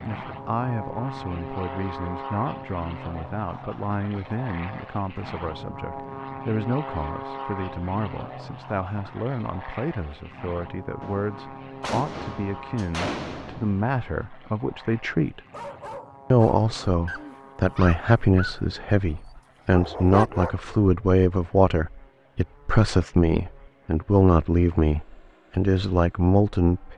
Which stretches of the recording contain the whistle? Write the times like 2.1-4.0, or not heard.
not heard.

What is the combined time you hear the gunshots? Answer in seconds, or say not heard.
3 s.